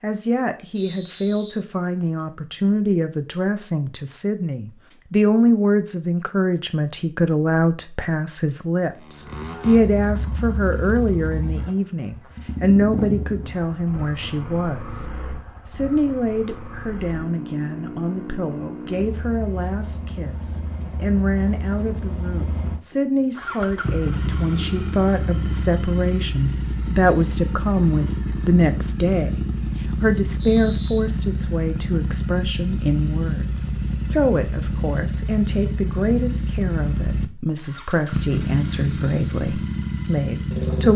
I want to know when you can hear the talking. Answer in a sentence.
The talking can be heard from 0.0 to 15.1 s and from 15.7 to 40.9 s.